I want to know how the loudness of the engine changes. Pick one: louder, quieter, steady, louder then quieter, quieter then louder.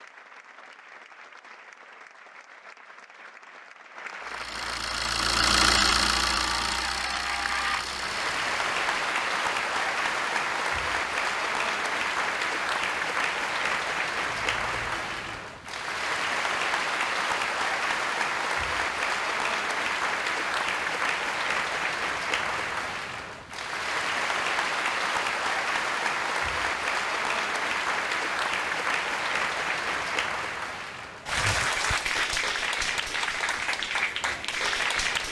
louder then quieter.